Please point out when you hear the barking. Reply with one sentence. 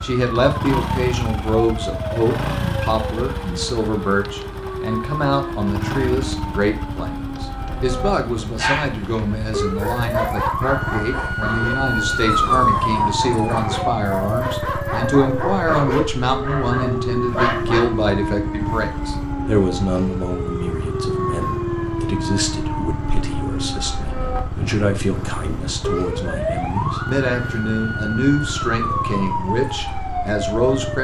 You can hear the barking from 8.6 to 17.9 s.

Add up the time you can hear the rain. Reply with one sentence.
The rain can't be heard in this clip.